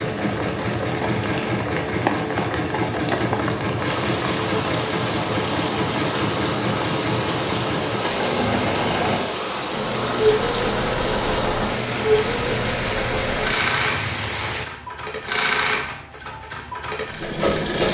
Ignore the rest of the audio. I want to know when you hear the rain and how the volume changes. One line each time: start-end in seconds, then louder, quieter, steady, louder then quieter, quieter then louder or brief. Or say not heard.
0.0-14.7 steady.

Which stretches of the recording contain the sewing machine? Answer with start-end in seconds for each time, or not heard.
0.0-17.8.